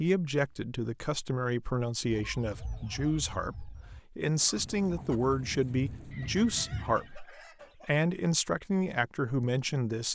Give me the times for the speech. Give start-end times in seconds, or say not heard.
0.0-10.1.